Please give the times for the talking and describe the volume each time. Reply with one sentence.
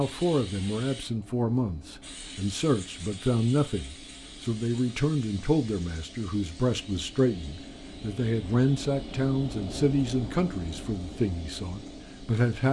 The talking can be heard from 0.0 to 12.6 s, at a steady volume.